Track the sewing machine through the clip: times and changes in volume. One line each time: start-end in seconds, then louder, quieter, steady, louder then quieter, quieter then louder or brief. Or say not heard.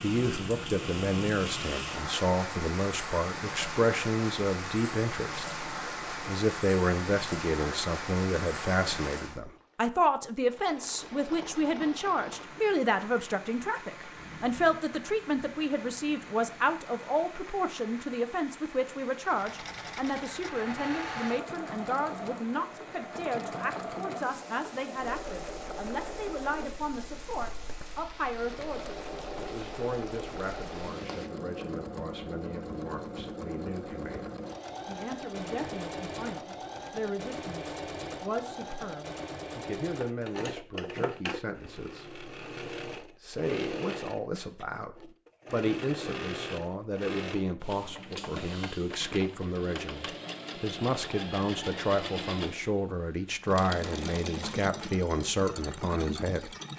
19.2-56.7 steady.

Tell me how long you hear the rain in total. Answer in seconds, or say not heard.
31 s.